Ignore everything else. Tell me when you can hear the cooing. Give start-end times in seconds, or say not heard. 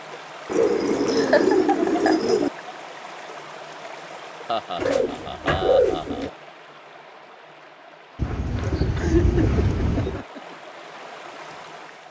0.5-2.5, 4.8-6.3, 8.2-10.2.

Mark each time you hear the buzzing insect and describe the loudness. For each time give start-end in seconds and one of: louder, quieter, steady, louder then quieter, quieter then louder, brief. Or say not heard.
not heard.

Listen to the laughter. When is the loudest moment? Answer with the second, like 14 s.
1 s.